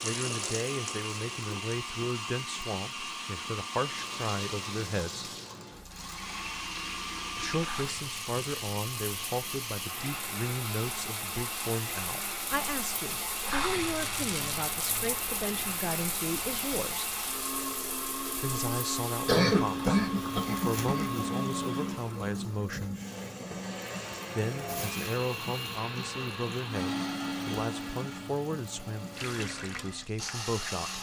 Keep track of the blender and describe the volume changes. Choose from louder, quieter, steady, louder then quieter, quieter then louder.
steady.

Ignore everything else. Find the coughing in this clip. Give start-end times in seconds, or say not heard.
19.2-21.1.